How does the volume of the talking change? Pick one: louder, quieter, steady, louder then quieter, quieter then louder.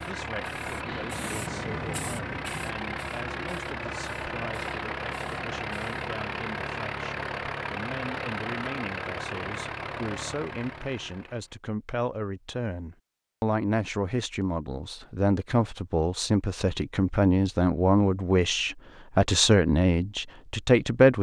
louder.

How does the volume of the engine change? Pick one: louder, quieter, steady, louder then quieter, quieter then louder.
steady.